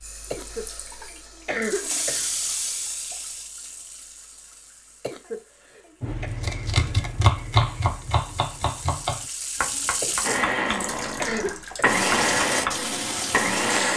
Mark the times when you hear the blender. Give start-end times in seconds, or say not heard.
10.2-13.9.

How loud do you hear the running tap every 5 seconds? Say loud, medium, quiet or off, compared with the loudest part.
medium, medium, loud.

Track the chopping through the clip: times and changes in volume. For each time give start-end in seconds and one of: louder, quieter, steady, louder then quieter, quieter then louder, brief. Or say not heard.
6.0-12.8 quieter.